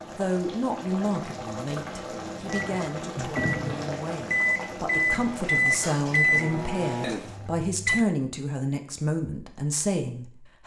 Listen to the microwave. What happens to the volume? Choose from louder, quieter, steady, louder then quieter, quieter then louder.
louder then quieter.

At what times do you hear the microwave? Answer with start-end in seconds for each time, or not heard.
2.5-8.1.